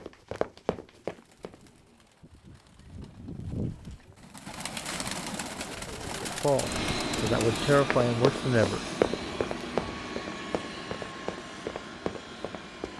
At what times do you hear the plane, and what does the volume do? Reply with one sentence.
You can hear the plane from 6.5 to 12.9 s, getting quieter.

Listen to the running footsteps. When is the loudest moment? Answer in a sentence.
The loudest moment of the running footsteps is at 9 seconds.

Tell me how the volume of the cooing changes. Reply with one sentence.
The volume of the cooing goes up.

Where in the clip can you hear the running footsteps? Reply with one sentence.
The running footsteps can be heard from 0.0 to 1.6 s and from 7.8 to 12.9 s.